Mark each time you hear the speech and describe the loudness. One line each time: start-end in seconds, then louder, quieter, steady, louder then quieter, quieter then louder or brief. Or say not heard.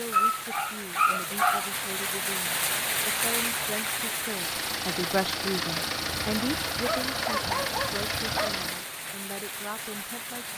0.0-10.5 louder then quieter.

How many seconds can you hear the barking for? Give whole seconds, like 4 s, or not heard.
4 s.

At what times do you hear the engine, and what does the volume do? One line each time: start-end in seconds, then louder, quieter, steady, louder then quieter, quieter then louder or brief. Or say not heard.
4.2-8.8 steady.